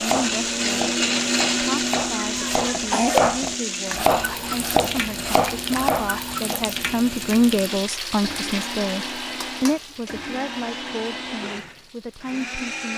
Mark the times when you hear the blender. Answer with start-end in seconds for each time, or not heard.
0.0-12.9.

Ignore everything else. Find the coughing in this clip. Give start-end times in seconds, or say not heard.
2.2-3.3.